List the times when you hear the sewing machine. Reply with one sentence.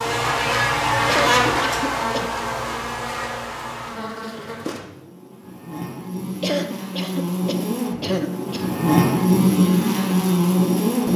The sewing machine can't be heard in this clip.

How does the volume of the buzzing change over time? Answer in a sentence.
The loudness of the buzzing goes down, then up.